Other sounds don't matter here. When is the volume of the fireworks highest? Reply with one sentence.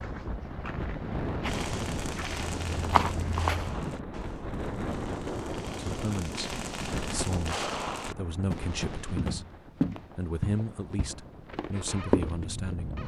The volume of the fireworks peaks at 8 seconds.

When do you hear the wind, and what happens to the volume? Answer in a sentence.
You can hear the wind from 0.0 to 13.0 s, getting quieter.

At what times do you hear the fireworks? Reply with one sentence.
You can hear the fireworks from 1.4 to 9.8 s.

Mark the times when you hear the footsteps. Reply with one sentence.
The footsteps can be heard from 0.0 to 3.8 s and from 9.2 to 13.0 s.